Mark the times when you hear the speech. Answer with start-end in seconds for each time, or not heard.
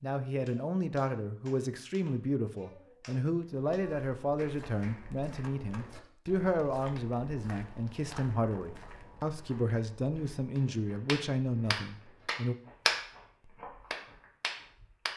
0.0-12.6.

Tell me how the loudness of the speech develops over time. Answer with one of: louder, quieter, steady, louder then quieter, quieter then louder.
steady.